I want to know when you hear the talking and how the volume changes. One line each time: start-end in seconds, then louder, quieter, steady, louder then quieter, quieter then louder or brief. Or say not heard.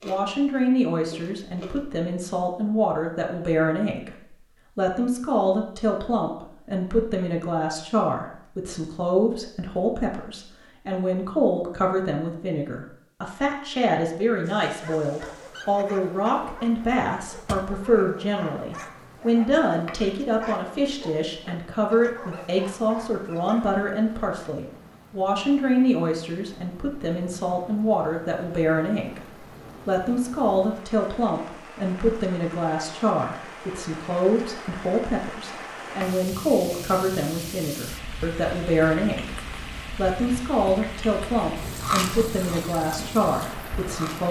0.1-44.2 steady.